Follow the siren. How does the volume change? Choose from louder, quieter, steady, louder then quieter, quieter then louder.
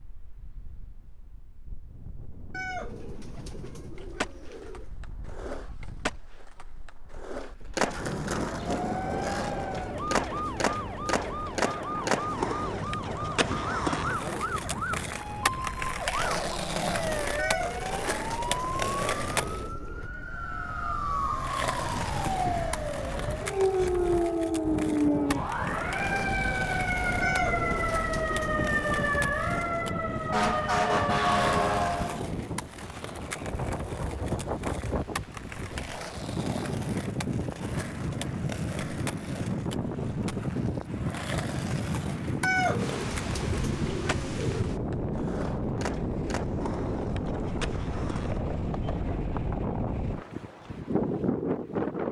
louder.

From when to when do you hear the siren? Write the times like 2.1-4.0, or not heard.
8.7-32.2.